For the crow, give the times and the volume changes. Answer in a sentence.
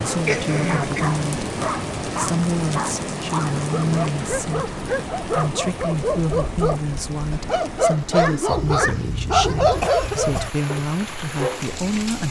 You can't hear the crow here.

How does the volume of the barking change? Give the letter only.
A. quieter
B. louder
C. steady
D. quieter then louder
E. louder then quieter
B.